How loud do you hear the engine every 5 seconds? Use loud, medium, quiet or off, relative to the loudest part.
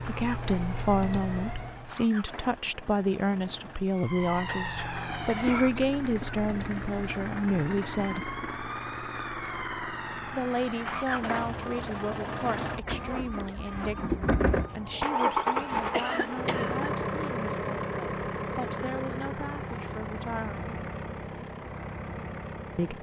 quiet, medium, loud, loud, medium.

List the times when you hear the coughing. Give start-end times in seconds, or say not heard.
5.5-6.8, 15.9-16.9.